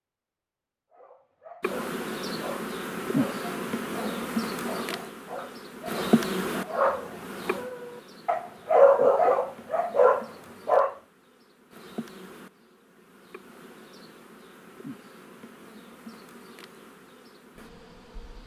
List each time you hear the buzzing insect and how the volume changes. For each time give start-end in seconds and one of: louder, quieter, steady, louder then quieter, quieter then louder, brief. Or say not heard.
1.6-18.4 quieter.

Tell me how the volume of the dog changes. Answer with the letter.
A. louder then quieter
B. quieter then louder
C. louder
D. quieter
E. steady
C.